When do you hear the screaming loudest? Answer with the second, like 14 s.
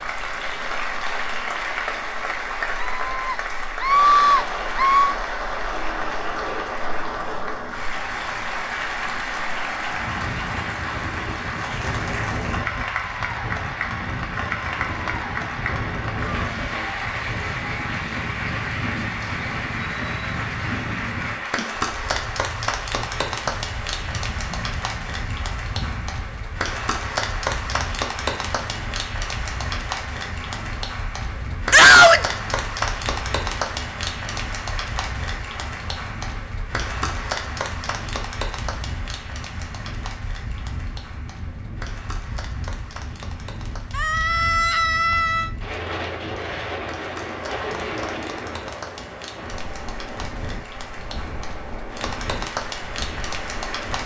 32 s.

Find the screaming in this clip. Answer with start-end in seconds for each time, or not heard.
2.8-5.2, 31.7-32.2, 43.9-45.5.